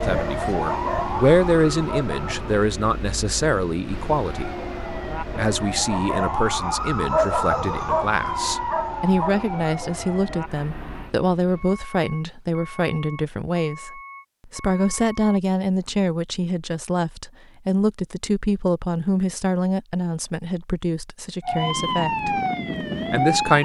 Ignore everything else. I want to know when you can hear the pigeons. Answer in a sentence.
The pigeons can't be heard in this clip.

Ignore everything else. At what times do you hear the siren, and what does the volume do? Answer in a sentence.
You can hear the siren briefly from 0.0 to 2.5 s; from 4.2 to 11.2 s, getting louder then quieter; and briefly from 21.4 to 23.6 s.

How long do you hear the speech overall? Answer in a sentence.
The speech can be heard for 22 seconds in total.